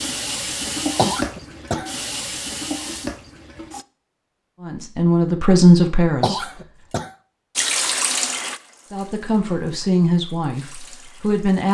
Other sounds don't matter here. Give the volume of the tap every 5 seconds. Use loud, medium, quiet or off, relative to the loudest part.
loud, loud, quiet.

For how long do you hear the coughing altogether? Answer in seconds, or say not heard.
2 s.